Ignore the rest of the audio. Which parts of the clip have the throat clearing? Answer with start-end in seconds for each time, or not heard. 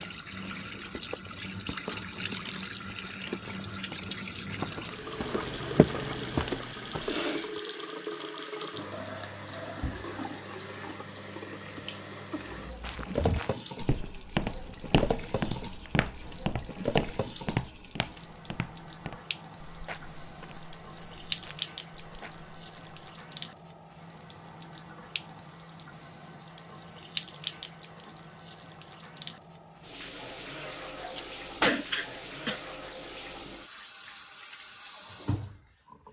31.0-32.6.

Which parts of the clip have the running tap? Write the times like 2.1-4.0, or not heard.
0.0-36.0.